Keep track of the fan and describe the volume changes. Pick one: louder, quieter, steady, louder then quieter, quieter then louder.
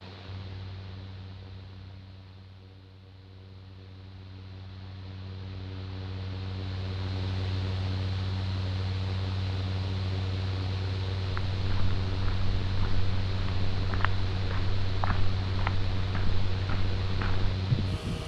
louder.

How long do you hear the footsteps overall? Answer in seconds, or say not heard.
7 s.